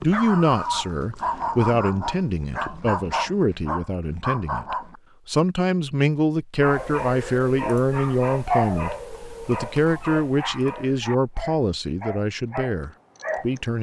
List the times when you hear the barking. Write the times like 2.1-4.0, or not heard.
0.0-5.0, 6.5-13.6.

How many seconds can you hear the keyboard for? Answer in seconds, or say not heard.
not heard.